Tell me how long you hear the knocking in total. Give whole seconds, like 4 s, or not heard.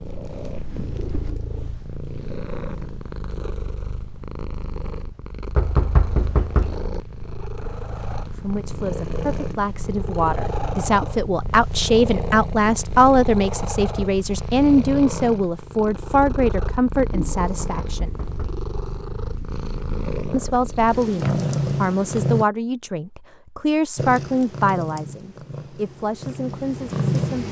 2 s.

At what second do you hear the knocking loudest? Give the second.
6 s.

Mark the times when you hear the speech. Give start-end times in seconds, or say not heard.
8.3-18.1, 20.3-27.4.